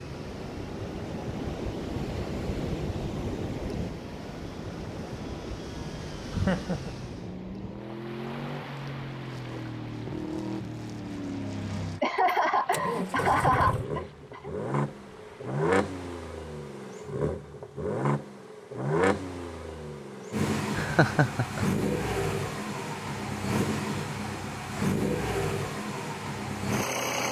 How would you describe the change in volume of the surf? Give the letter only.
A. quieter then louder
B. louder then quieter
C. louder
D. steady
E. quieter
E.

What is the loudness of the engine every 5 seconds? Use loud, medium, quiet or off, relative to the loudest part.
quiet, medium, loud, loud, loud, loud.